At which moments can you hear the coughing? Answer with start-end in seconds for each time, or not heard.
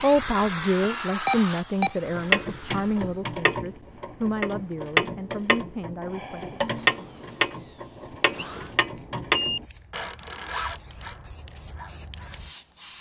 not heard.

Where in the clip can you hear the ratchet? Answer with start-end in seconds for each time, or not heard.
2.1-12.9.